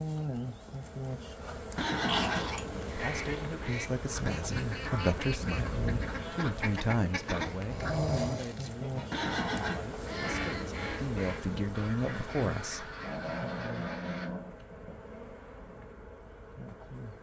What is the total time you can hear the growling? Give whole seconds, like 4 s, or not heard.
4 s.